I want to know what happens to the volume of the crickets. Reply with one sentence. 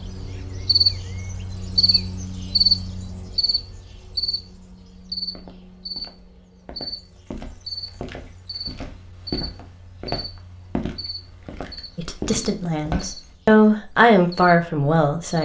The loudness of the crickets goes down.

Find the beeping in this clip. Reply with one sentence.
The beeping can't be heard in this clip.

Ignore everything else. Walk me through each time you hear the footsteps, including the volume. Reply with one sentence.
You can hear the footsteps from 5.2 to 13.3 s, getting louder.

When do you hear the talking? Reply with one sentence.
The talking can be heard from 11.9 to 15.4 s.